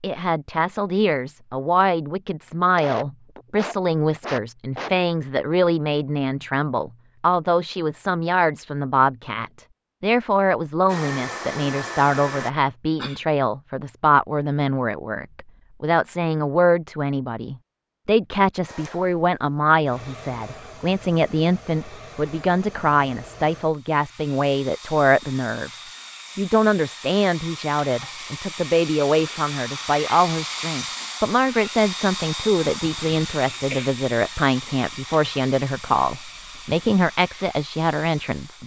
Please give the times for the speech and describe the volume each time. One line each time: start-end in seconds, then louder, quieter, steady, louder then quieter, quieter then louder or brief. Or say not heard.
0.0-38.6 steady.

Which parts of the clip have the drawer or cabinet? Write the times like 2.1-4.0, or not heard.
not heard.